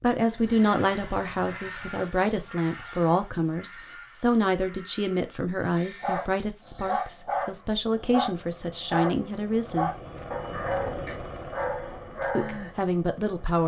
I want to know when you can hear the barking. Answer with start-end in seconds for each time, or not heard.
6.0-12.7.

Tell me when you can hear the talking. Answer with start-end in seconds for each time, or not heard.
0.0-9.9, 12.3-13.6.